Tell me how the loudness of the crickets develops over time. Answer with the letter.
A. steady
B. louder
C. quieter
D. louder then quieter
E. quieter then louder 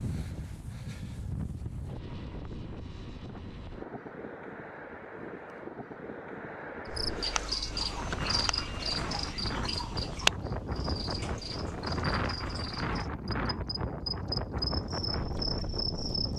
E.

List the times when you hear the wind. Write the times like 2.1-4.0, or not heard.
0.0-16.3.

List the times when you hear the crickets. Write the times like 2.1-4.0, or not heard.
6.8-16.3.